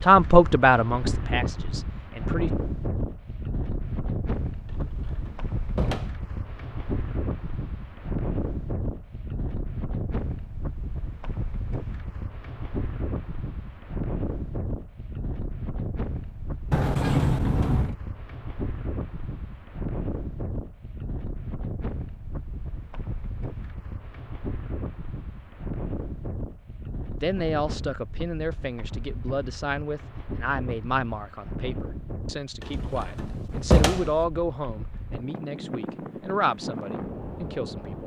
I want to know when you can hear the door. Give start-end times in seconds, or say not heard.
4.7-6.1, 16.7-17.9, 32.6-34.1.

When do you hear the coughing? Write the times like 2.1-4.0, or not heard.
not heard.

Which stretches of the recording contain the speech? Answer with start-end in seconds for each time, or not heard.
0.0-2.5, 27.2-38.0.